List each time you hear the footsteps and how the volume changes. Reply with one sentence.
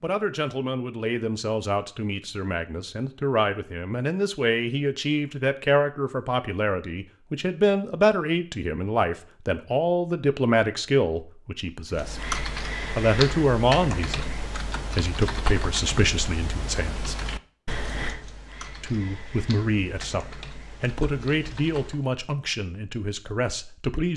The footsteps can't be heard in this clip.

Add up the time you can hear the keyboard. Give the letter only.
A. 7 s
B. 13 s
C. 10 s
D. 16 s
C.